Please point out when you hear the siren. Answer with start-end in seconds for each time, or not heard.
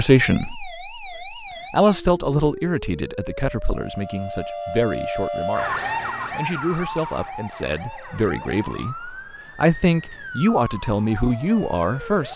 0.0-12.3.